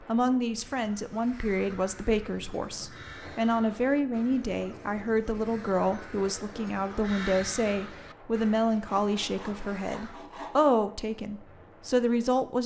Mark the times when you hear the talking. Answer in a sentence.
You can hear the talking from 0.0 to 12.6 s.